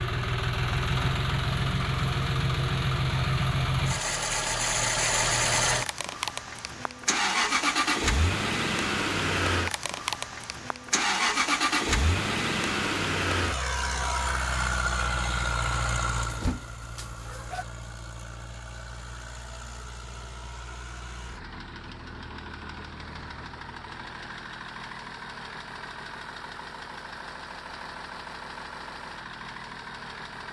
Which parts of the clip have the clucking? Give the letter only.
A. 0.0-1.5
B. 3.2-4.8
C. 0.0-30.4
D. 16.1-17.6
D.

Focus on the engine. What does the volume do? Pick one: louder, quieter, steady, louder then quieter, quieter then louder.
quieter.